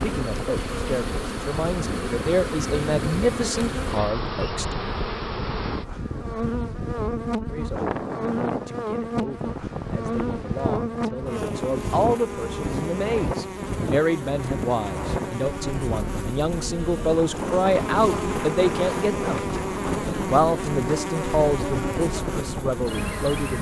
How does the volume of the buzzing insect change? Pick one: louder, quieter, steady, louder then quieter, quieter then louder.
steady.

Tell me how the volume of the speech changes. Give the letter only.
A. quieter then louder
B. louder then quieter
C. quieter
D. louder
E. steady
A.